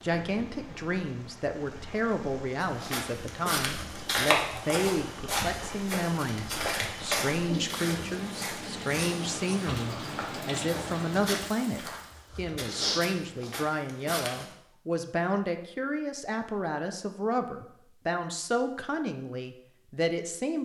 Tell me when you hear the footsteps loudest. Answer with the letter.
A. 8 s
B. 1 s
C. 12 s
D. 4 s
D.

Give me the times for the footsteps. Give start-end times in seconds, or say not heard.
2.6-14.5.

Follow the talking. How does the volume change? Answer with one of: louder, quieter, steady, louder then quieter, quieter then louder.
steady.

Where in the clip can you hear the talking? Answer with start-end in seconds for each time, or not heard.
0.0-20.6.